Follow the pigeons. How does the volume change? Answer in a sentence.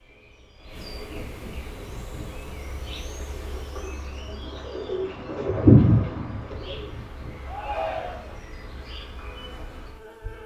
The loudness of the pigeons goes up, then down.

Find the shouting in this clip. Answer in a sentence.
The shouting can be heard from 7.5 to 8.3 s.